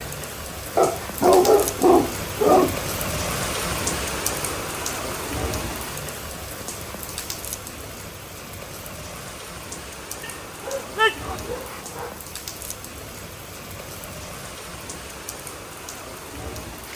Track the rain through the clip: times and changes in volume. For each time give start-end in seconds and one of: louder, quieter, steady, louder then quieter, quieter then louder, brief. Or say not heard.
0.0-16.9 quieter.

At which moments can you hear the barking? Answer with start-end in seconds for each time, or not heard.
0.8-2.8, 10.2-12.1.